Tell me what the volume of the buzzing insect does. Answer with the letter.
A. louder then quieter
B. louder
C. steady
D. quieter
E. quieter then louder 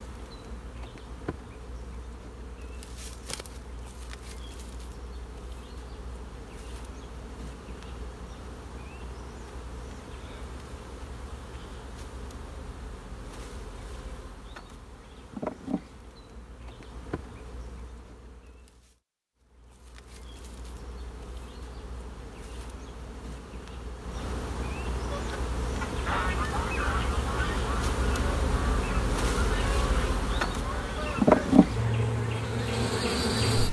B.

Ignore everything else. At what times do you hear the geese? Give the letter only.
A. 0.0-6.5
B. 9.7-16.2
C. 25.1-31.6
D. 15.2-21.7
C.